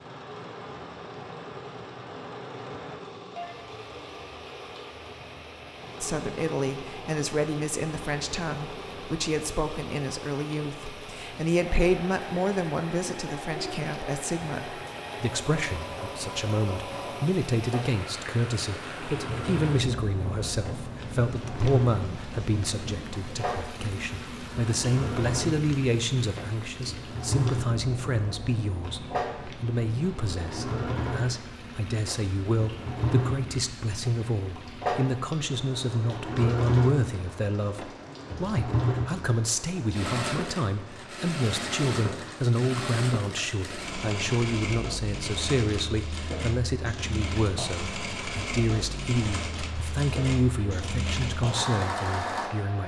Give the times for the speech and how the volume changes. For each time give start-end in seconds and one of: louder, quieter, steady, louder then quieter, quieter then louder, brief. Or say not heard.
6.0-52.8 steady.